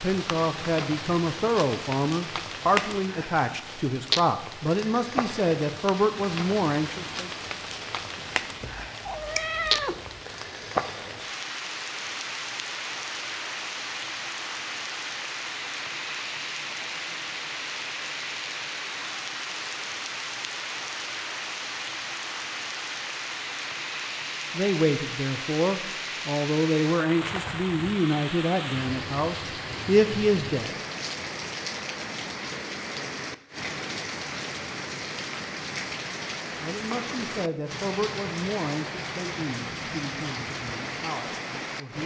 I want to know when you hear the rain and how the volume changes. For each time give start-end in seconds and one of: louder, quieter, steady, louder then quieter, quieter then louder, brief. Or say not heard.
0.0-42.0 steady.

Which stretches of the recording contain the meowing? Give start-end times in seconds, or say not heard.
8.2-10.2.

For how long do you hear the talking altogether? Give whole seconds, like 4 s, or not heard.
19 s.